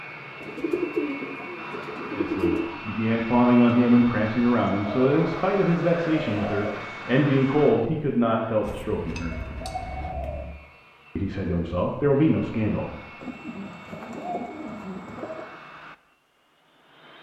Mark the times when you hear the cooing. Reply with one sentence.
The cooing can be heard from 0.4 to 2.7 s, from 4.8 to 6.8 s, from 8.6 to 10.6 s and from 13.2 to 15.4 s.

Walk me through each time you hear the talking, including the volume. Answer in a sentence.
You can hear the talking from 2.1 to 9.3 s, at a steady volume; and briefly from 11.2 to 12.9 s.